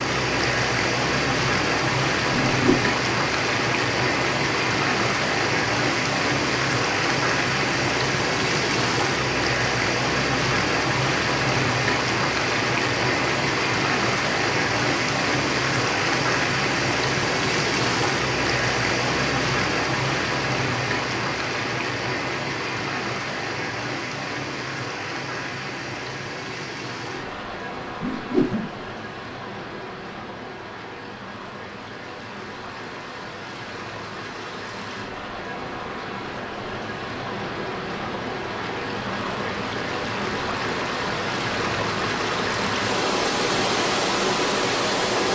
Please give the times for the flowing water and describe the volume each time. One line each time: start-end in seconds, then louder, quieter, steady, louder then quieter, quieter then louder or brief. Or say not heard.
0.0-45.3 quieter then louder.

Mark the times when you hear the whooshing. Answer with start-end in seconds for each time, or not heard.
2.5-3.0, 28.0-28.9.